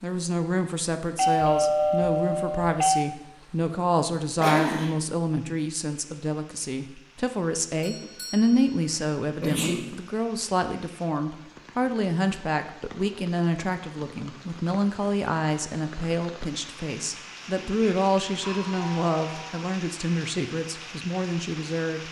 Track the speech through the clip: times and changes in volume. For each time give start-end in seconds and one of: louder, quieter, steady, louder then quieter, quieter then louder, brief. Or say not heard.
0.0-22.0 steady.